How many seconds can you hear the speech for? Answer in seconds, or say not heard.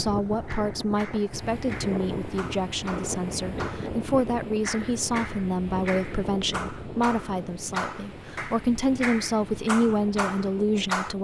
11 s.